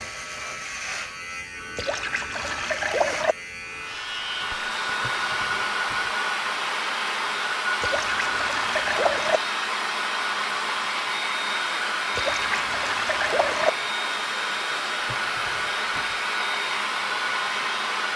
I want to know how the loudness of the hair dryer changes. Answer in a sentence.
The volume of the hair dryer stays about the same.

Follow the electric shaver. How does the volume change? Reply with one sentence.
The loudness of the electric shaver stays about the same.